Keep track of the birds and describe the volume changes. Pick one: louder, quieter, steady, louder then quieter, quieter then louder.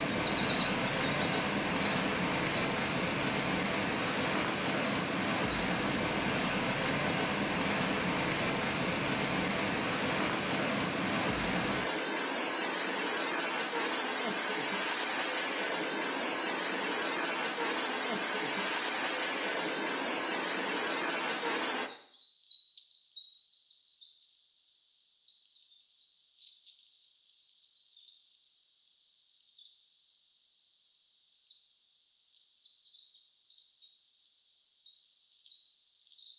louder.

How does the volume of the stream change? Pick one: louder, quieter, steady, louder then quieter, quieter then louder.
steady.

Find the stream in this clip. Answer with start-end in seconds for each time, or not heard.
0.0-21.9.